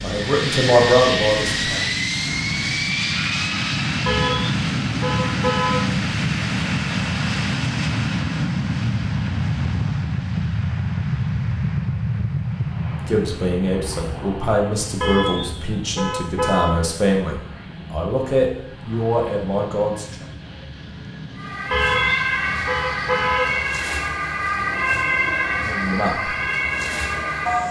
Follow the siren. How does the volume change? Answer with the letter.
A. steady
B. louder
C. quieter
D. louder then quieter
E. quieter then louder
A.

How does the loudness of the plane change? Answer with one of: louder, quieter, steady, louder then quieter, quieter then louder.
quieter.